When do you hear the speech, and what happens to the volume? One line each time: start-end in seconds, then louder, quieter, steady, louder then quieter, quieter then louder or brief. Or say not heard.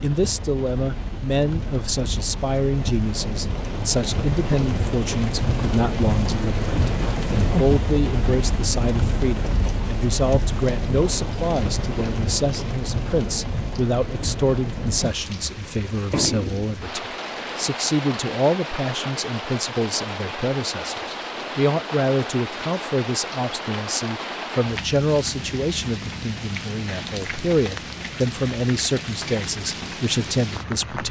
0.0-31.0 steady.